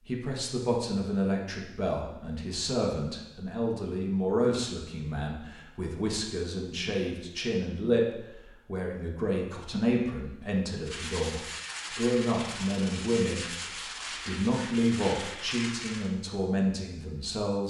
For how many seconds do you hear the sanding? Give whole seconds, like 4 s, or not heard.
5 s.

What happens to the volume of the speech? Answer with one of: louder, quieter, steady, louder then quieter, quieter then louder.
steady.